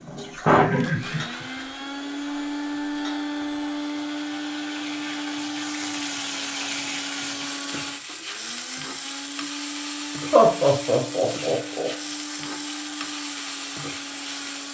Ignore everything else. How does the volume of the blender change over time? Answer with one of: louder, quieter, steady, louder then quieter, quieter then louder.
quieter.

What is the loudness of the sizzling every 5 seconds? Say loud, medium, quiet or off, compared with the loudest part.
medium, loud, loud.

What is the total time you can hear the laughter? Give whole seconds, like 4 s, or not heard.
2 s.